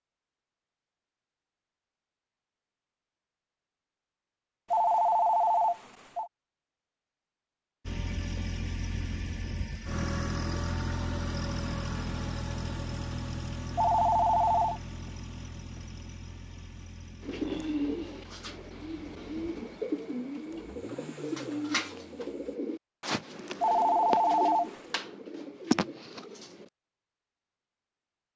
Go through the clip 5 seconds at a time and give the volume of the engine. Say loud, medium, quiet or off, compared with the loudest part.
off, loud, loud, quiet, quiet, off.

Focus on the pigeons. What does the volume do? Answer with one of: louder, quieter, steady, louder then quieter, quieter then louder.
steady.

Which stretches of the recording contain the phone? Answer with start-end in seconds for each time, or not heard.
4.7-6.3, 13.8-14.8, 23.6-24.8.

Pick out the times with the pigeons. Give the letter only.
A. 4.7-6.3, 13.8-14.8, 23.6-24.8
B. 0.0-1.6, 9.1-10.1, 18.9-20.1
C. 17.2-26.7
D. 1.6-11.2
C.